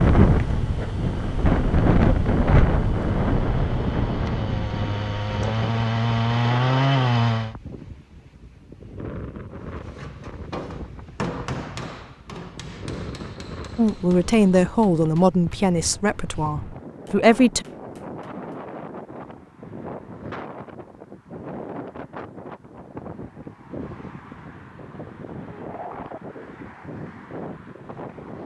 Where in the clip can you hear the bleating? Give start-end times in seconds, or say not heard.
not heard.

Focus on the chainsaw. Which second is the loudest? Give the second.
7 s.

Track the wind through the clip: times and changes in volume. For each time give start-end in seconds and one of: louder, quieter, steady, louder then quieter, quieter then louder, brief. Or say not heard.
0.0-28.4 quieter.